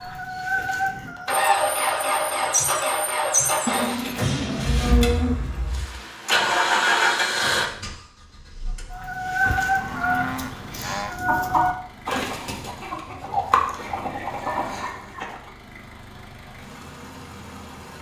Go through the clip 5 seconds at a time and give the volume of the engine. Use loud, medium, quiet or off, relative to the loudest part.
loud, loud, quiet, quiet.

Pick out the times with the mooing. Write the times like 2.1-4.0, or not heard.
3.6-5.4, 9.4-11.2.